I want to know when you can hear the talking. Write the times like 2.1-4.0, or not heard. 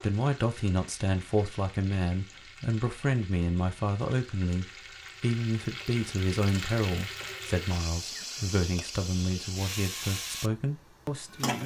0.0-11.6.